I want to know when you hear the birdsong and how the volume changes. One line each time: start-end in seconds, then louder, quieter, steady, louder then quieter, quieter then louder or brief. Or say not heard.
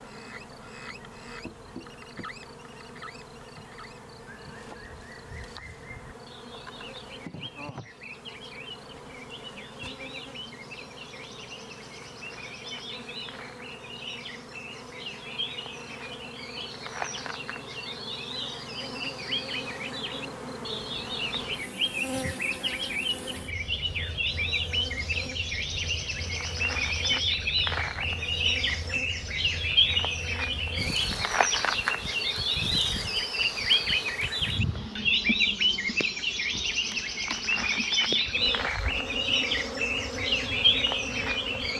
0.0-41.7 louder.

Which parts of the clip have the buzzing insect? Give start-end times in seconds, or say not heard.
0.0-41.7.